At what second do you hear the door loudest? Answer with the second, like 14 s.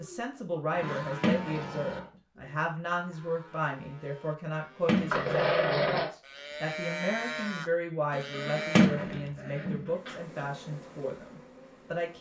9 s.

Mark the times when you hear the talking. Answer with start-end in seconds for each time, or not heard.
0.0-12.1.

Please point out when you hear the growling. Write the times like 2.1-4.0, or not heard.
0.8-2.1, 5.1-6.1, 8.1-10.2.